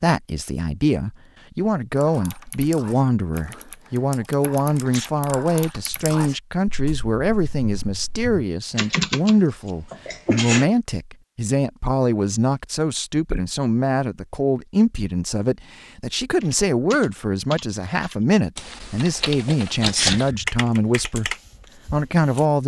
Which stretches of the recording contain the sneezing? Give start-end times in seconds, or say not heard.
4.8-5.8, 9.9-10.7, 19.8-20.5.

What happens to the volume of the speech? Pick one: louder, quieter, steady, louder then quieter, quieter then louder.
steady.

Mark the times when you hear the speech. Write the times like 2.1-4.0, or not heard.
0.0-22.6.